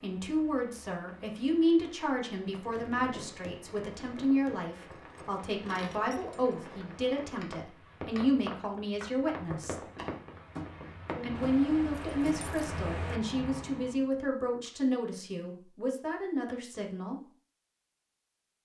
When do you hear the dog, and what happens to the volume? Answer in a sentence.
You can't hear the dog here.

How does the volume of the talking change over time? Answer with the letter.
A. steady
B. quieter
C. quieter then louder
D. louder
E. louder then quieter
A.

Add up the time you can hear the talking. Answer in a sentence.
The talking can be heard for 16 seconds in total.